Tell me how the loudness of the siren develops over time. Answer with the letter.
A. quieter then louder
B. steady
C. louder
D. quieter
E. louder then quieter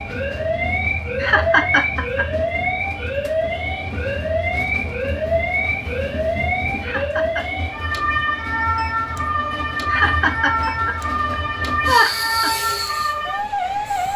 B.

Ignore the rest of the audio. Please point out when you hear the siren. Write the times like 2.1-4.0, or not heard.
0.0-14.1.